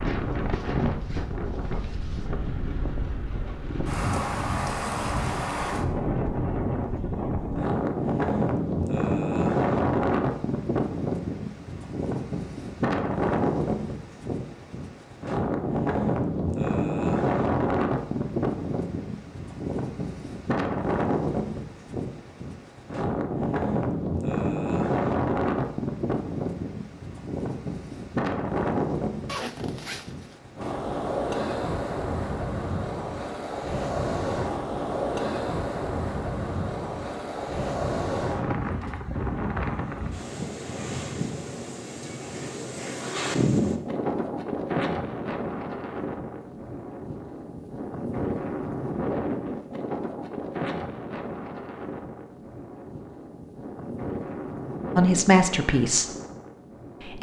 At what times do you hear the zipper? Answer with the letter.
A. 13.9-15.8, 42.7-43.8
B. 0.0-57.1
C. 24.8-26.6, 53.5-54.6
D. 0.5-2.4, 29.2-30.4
D.